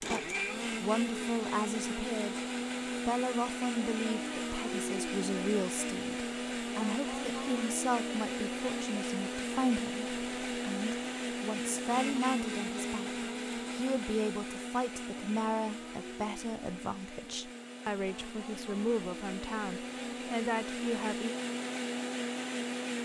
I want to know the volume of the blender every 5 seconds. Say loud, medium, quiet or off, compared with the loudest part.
loud, loud, loud, medium, loud.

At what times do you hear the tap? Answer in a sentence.
You can't hear the tap here.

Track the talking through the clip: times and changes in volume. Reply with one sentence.
You can hear the talking briefly from 0.0 to 2.4 s; and from 3.0 to 21.4 s, at a steady volume.